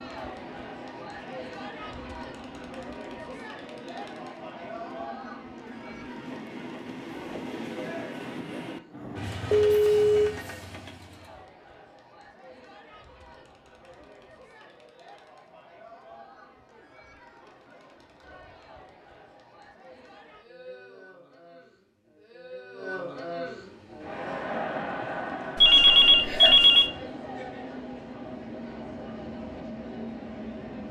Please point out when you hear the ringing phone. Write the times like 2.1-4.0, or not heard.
9.5-10.3, 25.6-26.9.